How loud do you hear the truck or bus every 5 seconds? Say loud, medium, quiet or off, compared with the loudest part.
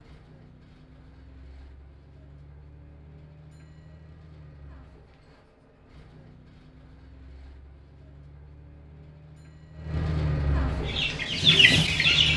quiet, quiet, loud.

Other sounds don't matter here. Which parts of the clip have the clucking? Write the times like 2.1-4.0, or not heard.
10.8-12.3.